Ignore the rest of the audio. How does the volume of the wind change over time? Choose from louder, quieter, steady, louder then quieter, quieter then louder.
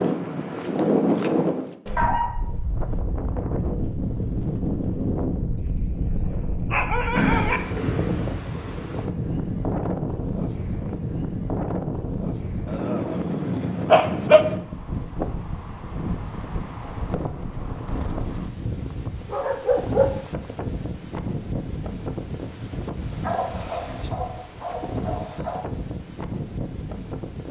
quieter.